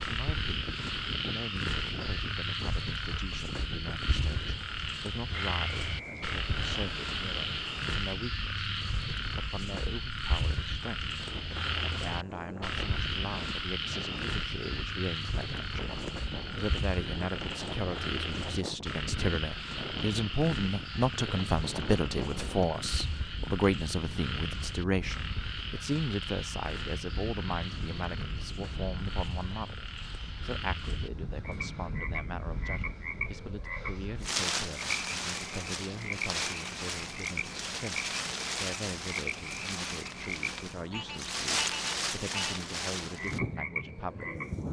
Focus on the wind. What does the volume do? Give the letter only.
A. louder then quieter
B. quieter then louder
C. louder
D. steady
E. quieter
C.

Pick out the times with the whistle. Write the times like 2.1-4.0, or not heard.
5.5-6.8.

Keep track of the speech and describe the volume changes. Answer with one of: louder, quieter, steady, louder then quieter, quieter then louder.
louder then quieter.